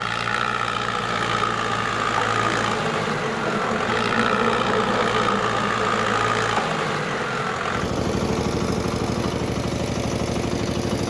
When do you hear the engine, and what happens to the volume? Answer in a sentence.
You can hear the engine from 0.0 to 11.0 s, at a steady volume.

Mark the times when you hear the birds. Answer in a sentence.
The birds can't be heard in this clip.